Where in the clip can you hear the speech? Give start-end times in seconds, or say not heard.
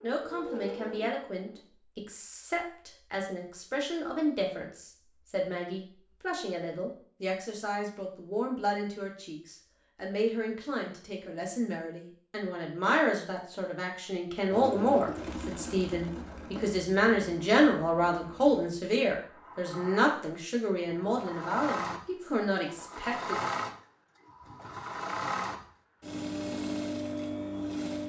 0.0-23.4.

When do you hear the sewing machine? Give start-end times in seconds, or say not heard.
0.0-1.6, 14.5-28.0.